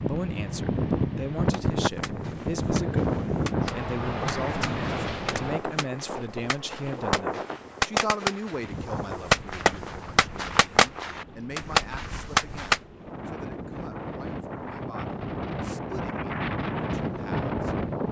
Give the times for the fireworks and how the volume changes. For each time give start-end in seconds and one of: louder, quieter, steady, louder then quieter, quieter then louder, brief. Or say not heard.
1.5-12.8 louder.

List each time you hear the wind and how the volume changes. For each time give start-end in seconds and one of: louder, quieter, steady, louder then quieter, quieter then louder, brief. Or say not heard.
0.0-18.0 quieter then louder.